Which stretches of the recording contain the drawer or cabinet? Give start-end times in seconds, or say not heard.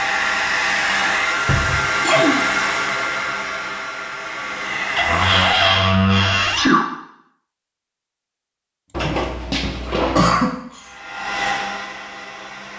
1.4-1.9, 5.0-6.7, 8.9-10.3.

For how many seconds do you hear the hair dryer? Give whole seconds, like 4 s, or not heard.
8 s.